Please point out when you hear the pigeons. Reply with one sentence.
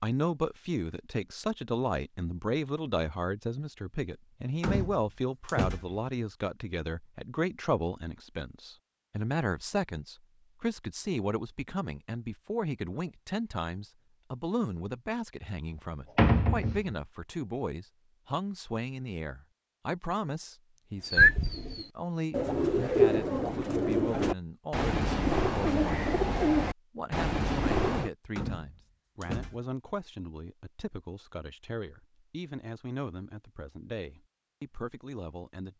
You can hear the pigeons from 21.0 to 28.1 s.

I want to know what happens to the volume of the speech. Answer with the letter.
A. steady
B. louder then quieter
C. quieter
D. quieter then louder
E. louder
C.